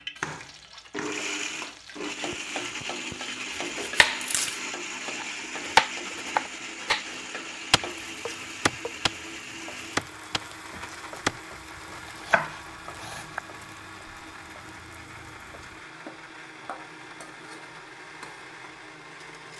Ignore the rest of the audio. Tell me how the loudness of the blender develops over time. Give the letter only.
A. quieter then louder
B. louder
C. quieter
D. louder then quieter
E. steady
C.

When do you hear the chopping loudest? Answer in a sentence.
The loudest moment of the chopping is at 6 seconds.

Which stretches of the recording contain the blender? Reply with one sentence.
The blender can be heard from 0.0 to 19.5 s.